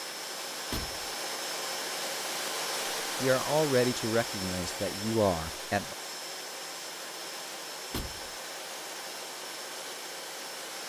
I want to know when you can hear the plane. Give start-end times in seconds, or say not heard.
0.0-10.8.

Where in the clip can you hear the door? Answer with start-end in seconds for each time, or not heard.
0.7-1.1, 7.9-8.3.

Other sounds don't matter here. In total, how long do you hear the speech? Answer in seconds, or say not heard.
3 s.